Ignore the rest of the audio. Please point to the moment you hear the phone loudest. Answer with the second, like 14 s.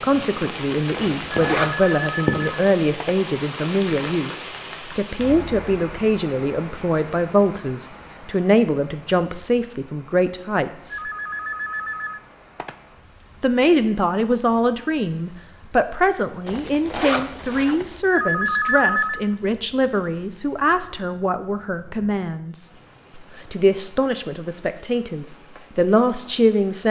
19 s.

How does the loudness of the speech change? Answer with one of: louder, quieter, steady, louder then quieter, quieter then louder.
steady.